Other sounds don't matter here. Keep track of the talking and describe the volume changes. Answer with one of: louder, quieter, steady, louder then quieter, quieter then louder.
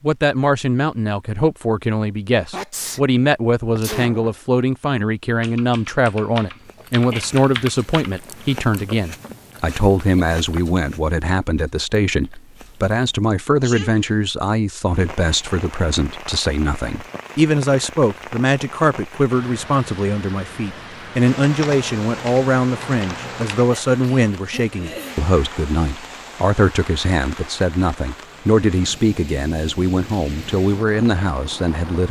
steady.